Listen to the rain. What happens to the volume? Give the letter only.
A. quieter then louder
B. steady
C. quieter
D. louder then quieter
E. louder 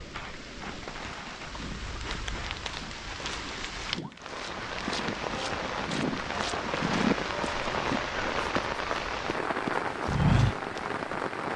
E.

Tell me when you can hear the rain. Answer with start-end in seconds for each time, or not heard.
0.0-11.5.